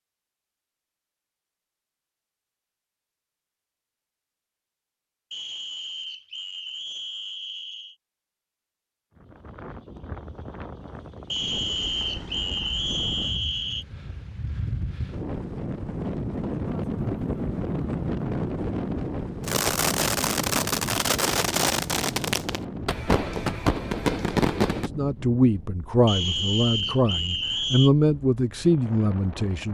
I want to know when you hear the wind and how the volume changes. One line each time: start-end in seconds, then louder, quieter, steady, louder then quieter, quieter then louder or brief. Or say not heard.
9.1-29.6 louder then quieter.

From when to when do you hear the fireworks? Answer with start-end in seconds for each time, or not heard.
19.4-24.9.